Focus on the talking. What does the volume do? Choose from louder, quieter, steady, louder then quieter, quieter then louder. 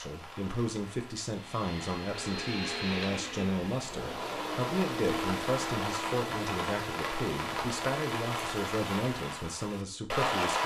steady.